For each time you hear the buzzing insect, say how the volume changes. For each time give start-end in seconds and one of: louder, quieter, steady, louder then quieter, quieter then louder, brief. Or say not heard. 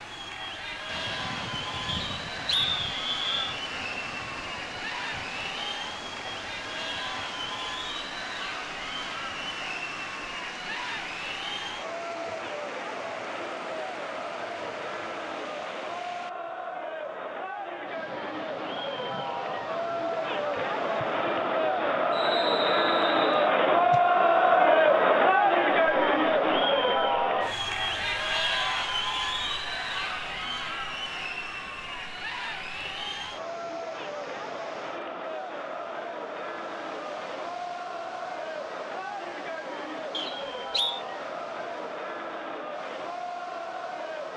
not heard.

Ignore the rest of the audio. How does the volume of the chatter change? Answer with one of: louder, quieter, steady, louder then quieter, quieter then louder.
louder then quieter.